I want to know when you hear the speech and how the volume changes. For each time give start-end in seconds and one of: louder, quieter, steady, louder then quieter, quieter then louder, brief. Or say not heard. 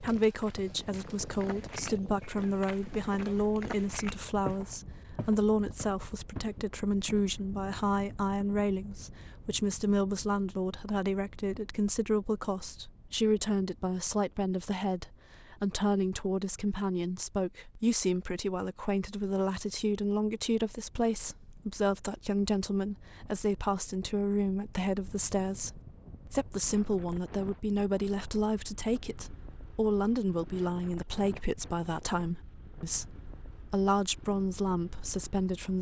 0.0-35.7 steady.